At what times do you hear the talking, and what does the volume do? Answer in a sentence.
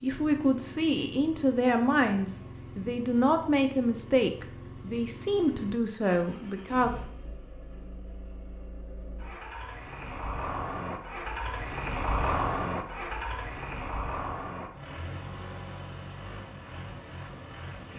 You can hear the talking from 0.0 to 7.0 s, at a steady volume.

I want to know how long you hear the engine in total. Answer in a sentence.
The engine can be heard for 18 seconds in total.